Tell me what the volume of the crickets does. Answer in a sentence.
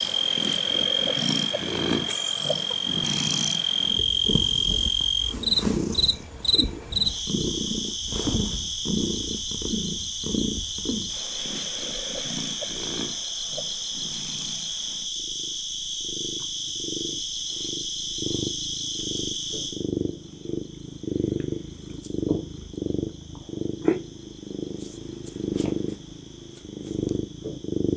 The loudness of the crickets goes down.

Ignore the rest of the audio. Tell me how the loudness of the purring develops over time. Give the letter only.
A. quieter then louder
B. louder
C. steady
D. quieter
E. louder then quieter
A.